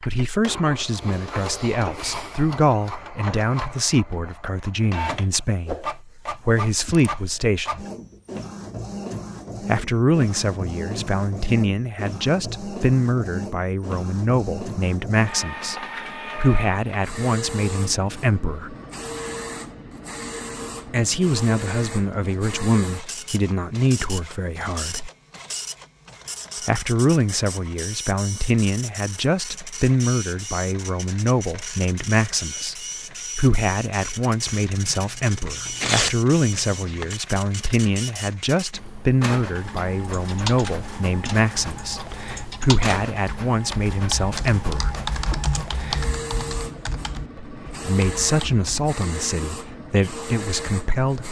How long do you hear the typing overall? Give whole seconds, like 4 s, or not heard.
9 s.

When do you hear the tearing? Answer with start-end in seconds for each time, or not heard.
34.5-37.1.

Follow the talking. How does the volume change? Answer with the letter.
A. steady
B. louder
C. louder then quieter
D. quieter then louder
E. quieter
A.